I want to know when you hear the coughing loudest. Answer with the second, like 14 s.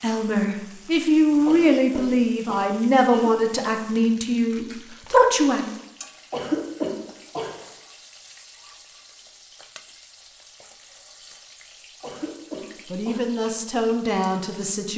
7 s.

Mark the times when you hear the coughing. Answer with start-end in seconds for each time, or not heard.
1.4-3.3, 6.3-7.5, 12.0-13.2.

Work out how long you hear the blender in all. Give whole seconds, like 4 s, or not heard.
not heard.